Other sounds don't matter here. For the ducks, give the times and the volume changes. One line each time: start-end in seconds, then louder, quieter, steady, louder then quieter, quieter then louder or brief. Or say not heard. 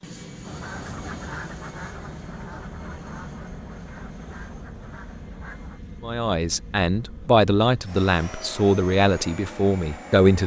0.4-5.8 quieter.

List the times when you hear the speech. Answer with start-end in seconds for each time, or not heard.
6.0-10.4.